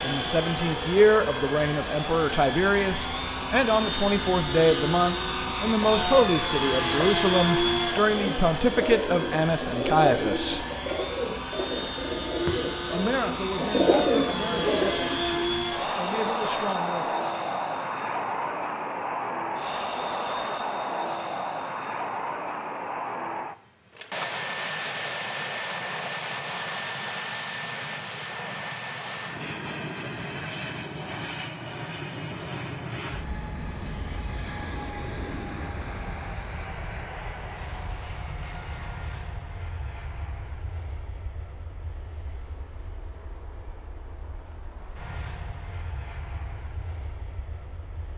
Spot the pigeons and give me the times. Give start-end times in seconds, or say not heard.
8.1-15.2.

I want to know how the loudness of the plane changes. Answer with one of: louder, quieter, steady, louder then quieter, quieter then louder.
quieter.